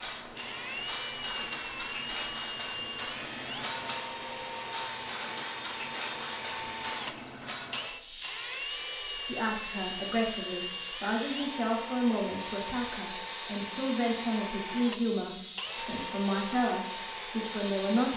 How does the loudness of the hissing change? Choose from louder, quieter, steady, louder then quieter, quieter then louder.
steady.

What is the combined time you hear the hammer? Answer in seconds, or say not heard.
not heard.